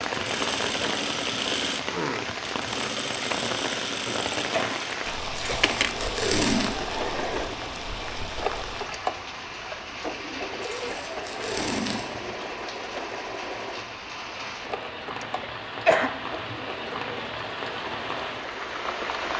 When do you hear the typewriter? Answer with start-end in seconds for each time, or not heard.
not heard.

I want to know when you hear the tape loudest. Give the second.
6 s.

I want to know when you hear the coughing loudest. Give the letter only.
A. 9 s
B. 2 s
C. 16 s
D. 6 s
C.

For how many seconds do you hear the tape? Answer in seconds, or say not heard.
3 s.